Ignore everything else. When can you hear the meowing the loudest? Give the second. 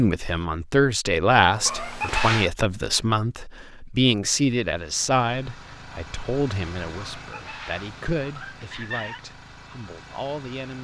2 s.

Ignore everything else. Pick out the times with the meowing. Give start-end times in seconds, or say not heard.
1.6-2.5, 7.0-9.2.